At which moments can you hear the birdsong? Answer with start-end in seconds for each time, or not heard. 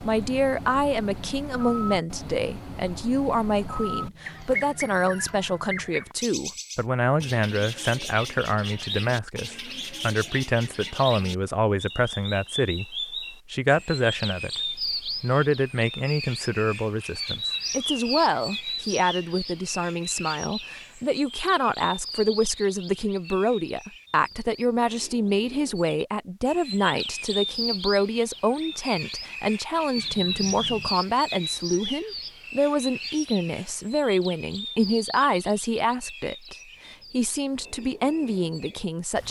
0.0-39.2.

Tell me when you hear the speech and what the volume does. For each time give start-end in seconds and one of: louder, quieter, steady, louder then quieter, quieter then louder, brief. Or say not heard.
0.0-39.2 steady.